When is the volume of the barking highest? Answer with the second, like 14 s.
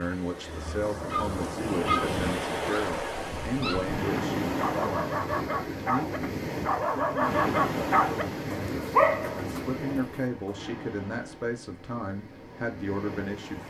9 s.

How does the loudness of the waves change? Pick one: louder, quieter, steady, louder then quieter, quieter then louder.
quieter.